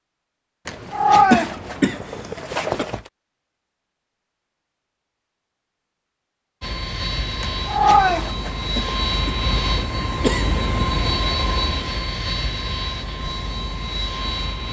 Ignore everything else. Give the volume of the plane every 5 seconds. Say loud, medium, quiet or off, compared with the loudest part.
off, loud, loud.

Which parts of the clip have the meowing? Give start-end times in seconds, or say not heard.
0.7-3.0, 7.4-9.2.